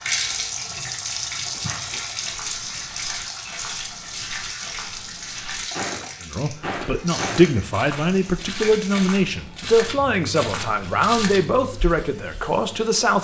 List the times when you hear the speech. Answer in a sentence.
You can hear the speech from 6.2 to 13.2 s.